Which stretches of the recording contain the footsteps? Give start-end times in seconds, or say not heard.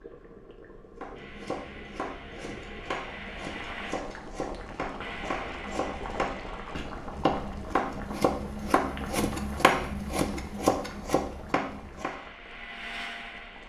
not heard.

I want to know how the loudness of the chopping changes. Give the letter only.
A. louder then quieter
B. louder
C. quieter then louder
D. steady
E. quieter
B.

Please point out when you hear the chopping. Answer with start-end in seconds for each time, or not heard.
1.0-12.2.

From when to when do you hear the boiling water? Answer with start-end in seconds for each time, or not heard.
0.0-13.6.